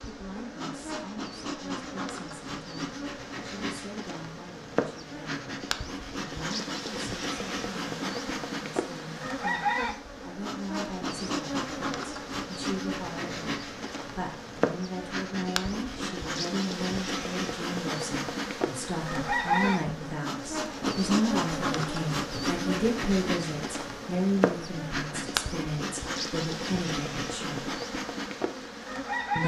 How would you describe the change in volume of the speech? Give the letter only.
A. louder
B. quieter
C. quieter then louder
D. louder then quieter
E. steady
A.